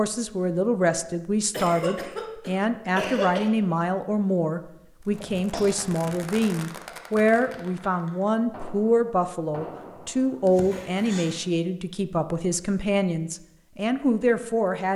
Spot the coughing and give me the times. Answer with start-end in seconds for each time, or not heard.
1.5-3.5, 5.1-5.8, 10.4-11.4.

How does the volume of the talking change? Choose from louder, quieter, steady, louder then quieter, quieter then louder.
steady.